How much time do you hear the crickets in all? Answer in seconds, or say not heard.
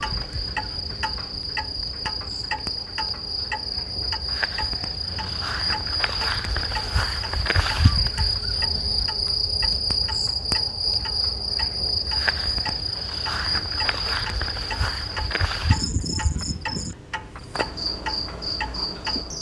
19 s.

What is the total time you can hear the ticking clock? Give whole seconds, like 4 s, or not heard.
19 s.